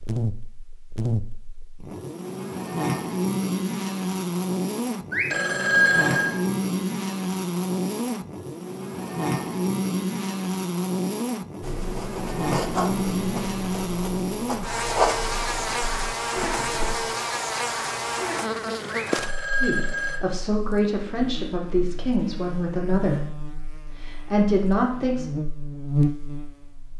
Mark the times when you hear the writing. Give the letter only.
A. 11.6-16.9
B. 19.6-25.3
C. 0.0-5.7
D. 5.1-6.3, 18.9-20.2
A.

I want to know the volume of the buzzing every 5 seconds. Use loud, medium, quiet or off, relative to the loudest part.
loud, loud, loud, loud, quiet, loud.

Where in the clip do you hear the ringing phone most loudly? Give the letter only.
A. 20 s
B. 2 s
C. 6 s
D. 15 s
C.